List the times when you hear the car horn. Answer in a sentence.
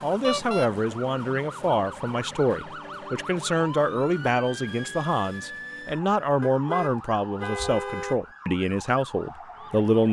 The car horn can be heard from 0.2 to 0.7 s and from 6.4 to 8.2 s.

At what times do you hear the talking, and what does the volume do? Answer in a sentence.
The talking can be heard from 0.0 to 10.0 s, at a steady volume.